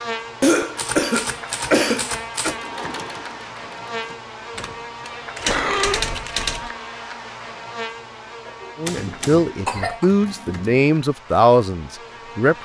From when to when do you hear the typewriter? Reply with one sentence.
The typewriter can be heard from 0.8 to 2.6 s, from 4.5 to 6.7 s and from 8.8 to 10.8 s.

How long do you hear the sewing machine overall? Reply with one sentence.
The sewing machine can be heard for 2 seconds in total.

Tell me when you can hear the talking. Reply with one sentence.
You can hear the talking from 8.8 to 12.6 s.